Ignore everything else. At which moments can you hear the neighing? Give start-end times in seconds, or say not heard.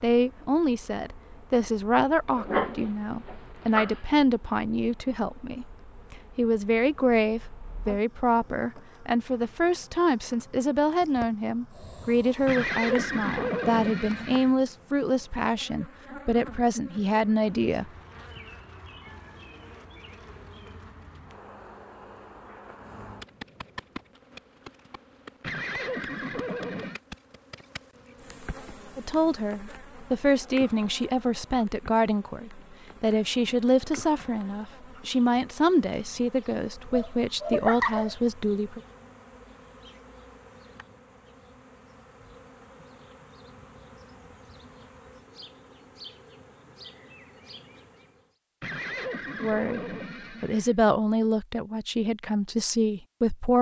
12.4-14.5, 25.4-27.0, 48.6-50.8.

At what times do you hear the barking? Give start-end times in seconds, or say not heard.
2.2-4.0, 36.8-38.1.